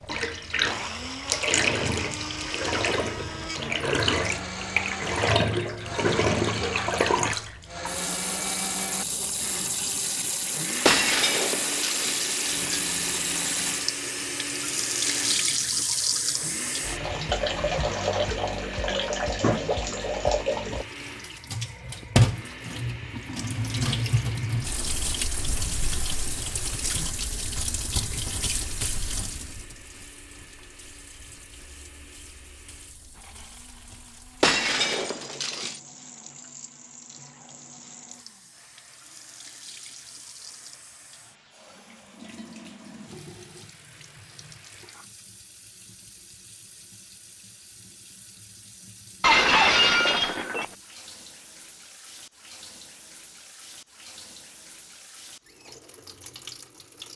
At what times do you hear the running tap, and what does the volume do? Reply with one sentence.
You can hear the running tap from 0.0 to 57.1 s, getting quieter.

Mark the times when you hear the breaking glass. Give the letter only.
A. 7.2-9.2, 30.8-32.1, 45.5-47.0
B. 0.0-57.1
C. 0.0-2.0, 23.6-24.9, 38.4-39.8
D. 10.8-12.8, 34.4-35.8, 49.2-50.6
D.